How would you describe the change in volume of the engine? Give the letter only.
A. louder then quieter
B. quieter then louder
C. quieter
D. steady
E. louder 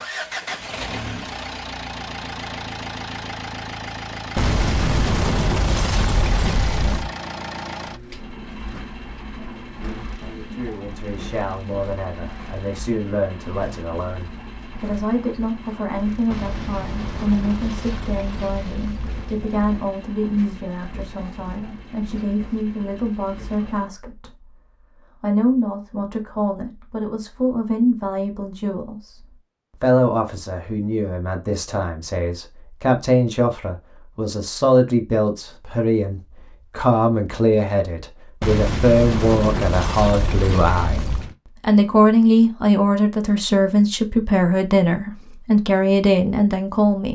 C.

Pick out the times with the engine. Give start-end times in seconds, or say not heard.
0.0-23.9.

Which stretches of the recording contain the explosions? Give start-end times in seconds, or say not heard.
4.3-7.1, 16.3-19.9, 38.4-41.4.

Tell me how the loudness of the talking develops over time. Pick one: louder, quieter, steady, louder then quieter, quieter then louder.
louder.